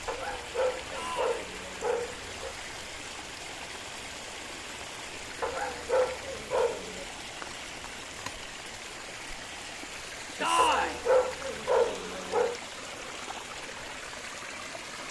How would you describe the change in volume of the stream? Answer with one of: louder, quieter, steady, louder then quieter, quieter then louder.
steady.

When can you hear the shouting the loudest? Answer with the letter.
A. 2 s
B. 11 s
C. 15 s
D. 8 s
B.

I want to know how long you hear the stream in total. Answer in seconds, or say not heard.
15 s.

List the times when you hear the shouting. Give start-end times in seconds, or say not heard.
0.9-1.4, 10.4-11.0.